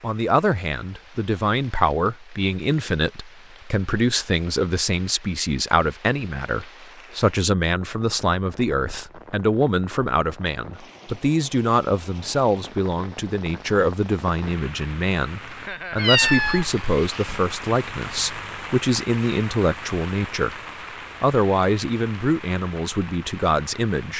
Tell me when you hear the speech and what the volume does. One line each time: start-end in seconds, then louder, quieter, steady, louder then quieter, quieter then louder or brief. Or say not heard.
0.0-20.6 steady
21.2-24.1 brief.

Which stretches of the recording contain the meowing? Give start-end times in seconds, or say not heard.
15.9-17.4.